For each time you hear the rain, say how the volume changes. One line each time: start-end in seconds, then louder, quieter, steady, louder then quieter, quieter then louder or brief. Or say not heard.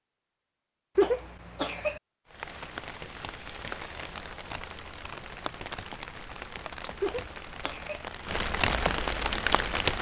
2.2-9.9 louder.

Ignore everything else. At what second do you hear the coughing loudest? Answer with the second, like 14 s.
1 s.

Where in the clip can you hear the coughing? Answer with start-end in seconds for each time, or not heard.
0.9-2.0, 7.0-8.1.